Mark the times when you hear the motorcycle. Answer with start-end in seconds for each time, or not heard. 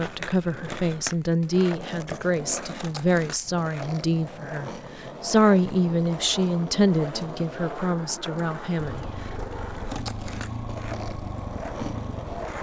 8.8-12.5.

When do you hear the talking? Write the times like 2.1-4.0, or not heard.
0.0-9.1.